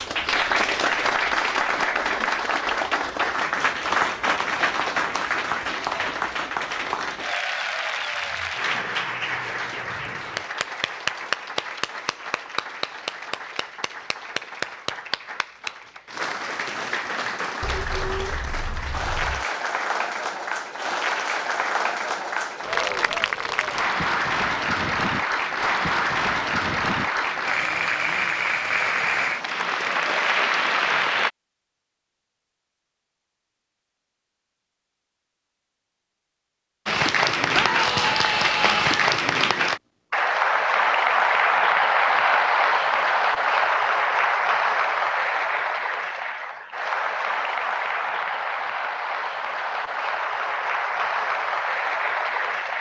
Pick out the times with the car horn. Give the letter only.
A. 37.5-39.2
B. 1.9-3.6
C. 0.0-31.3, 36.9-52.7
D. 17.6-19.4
D.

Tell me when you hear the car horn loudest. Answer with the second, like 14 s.
18 s.